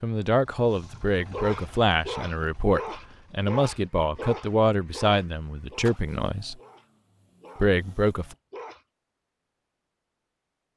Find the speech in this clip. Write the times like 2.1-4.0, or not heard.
0.0-6.5, 7.5-8.3.